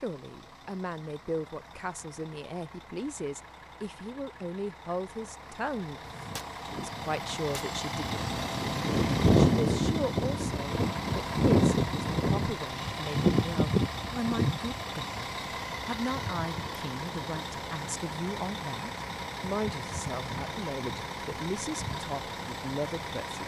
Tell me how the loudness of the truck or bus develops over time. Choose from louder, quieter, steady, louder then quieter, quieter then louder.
louder then quieter.